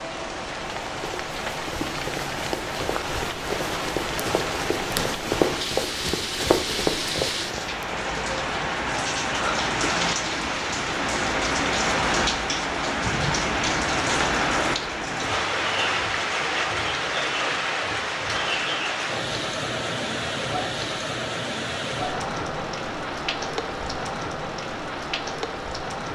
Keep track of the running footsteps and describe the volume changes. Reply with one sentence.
The loudness of the running footsteps goes up.